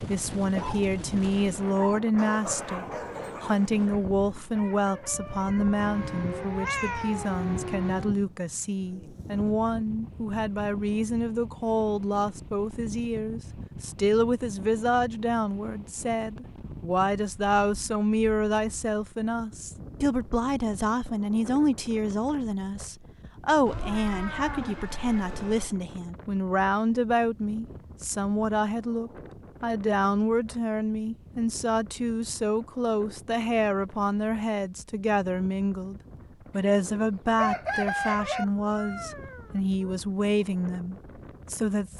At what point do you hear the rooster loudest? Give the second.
38 s.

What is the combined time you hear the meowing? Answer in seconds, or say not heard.
6 s.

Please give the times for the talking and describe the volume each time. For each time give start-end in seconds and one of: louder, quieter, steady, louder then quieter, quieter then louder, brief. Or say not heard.
0.1-41.9 steady.